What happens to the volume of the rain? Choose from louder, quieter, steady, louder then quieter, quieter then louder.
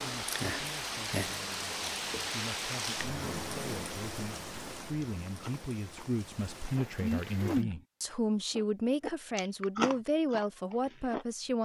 quieter.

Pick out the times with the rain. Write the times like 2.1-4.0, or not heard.
0.0-7.7.